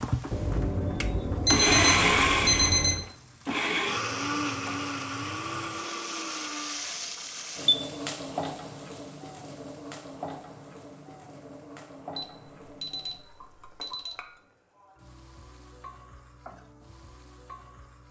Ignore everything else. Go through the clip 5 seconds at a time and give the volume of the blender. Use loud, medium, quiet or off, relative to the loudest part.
loud, medium, off, off.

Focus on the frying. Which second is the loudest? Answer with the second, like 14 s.
8 s.